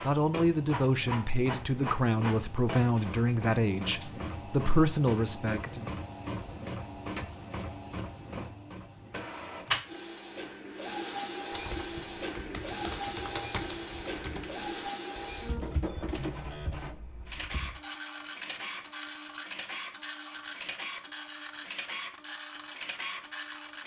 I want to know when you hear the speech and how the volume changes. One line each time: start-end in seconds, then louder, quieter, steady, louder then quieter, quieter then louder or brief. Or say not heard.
0.0-5.8 steady.